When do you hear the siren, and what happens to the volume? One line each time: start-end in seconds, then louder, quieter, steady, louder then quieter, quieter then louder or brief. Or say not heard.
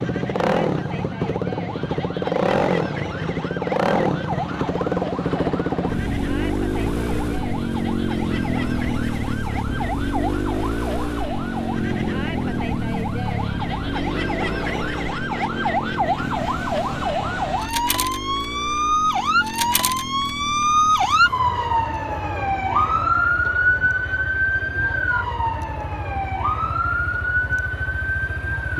0.0-28.7 louder.